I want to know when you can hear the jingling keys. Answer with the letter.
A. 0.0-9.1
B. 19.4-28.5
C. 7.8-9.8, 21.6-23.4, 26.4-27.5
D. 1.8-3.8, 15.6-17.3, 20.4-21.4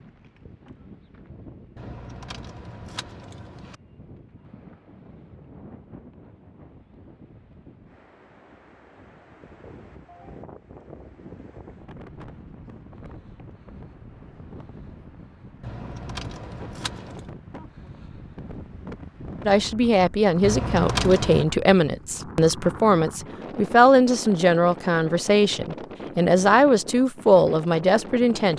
D.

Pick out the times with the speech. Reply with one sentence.
The speech can be heard from 19.4 to 28.5 s.